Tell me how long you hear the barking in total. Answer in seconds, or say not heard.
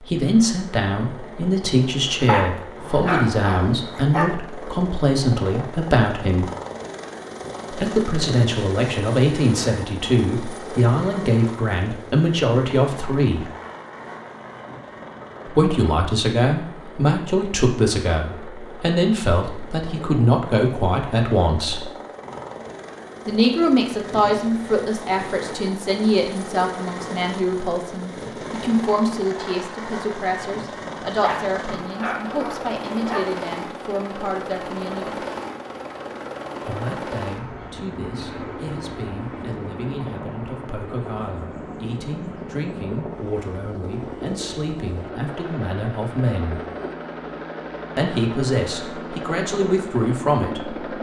4 s.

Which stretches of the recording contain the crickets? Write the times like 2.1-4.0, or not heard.
not heard.